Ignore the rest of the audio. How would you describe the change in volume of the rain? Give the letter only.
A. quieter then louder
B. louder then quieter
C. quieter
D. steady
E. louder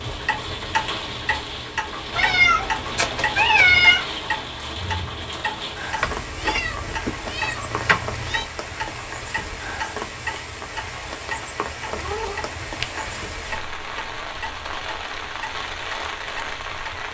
D.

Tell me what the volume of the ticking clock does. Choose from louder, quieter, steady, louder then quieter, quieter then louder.
quieter.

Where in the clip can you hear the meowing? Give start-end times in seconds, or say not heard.
2.1-4.0, 6.0-8.4, 11.8-13.6.